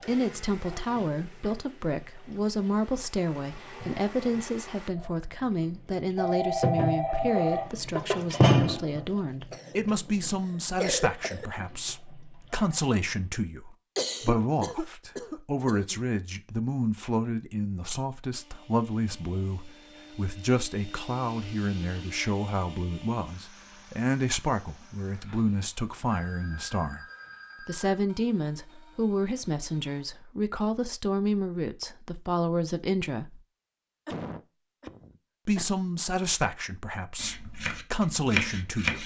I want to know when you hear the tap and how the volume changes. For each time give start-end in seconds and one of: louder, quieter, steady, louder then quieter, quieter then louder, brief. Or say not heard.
0.0-13.3 louder then quieter.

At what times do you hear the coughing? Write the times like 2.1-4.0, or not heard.
9.5-11.5, 13.9-16.0, 34.0-35.6.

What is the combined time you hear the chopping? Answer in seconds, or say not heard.
2 s.